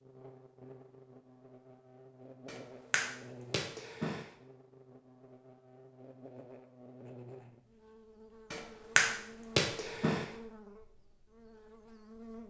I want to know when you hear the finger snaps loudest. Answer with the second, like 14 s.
9 s.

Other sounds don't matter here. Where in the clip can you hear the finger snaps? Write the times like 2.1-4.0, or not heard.
2.5-4.3, 8.5-10.3.